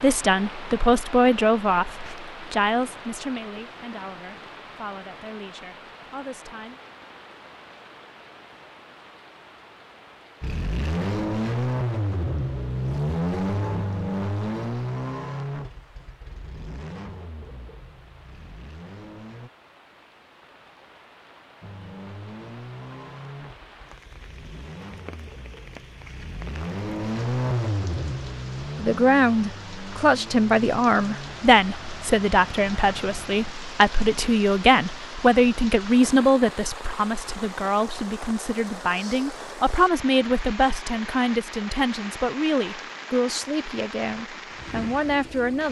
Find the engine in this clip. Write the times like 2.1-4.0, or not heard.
10.4-19.5, 21.6-33.5.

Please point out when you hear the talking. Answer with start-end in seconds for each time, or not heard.
0.0-6.8, 28.8-45.6.